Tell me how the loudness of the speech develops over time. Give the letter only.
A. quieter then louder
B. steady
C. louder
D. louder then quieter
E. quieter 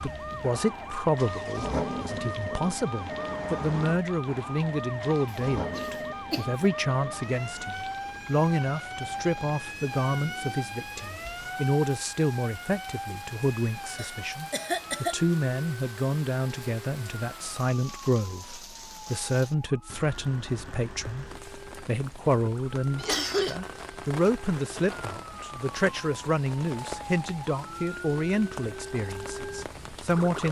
B.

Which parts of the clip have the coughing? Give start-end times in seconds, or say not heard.
5.7-6.7, 13.9-15.2, 22.9-23.6.